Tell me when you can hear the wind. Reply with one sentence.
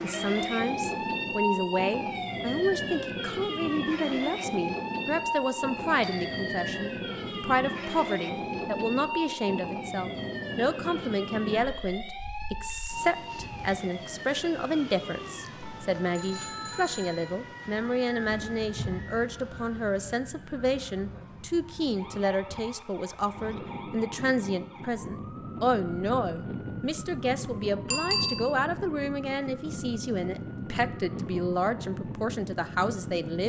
The wind can be heard from 0.0 to 33.4 s.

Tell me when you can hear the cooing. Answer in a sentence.
The cooing can't be heard in this clip.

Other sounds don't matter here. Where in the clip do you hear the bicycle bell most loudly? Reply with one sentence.
The volume of the bicycle bell peaks at 28 seconds.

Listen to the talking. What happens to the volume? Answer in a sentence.
The volume of the talking stays about the same.